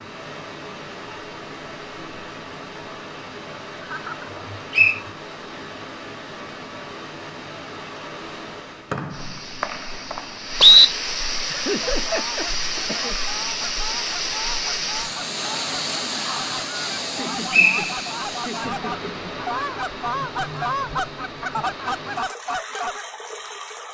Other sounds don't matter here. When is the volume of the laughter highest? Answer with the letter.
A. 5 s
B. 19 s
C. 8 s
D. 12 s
D.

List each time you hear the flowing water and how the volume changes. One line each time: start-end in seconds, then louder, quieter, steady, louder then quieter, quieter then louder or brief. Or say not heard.
0.0-23.9 louder then quieter.